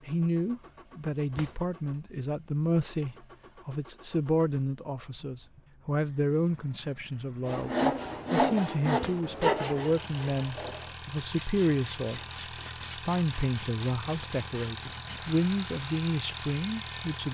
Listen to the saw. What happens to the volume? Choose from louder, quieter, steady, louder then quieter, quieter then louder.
quieter.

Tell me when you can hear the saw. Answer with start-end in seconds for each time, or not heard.
7.5-17.2.